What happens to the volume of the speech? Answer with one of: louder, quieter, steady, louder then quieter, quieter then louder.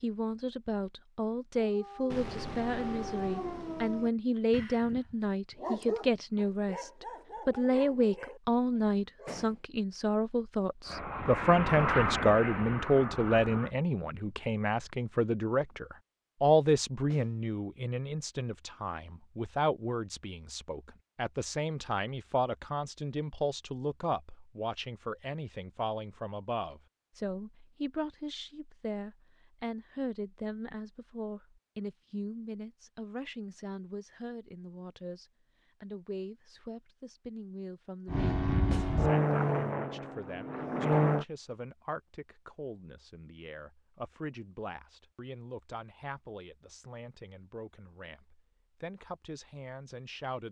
quieter.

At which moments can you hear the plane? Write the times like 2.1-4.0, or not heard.
10.8-13.7, 38.0-41.2.